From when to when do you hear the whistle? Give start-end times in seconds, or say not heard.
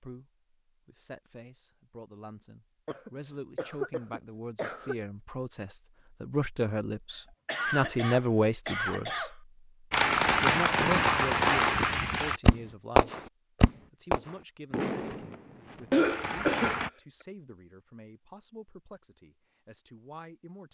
not heard.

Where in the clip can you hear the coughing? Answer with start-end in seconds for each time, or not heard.
2.9-5.0, 7.1-9.3, 15.9-16.8.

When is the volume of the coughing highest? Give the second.
16 s.